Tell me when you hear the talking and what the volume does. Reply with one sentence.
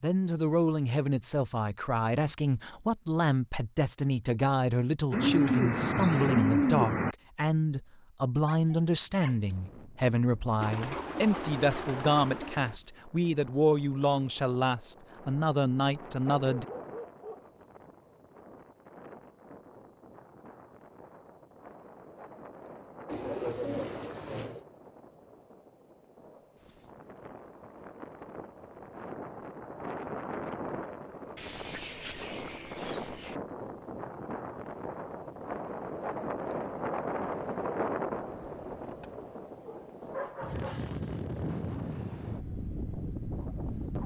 The talking can be heard from 0.0 to 16.6 s, at a steady volume.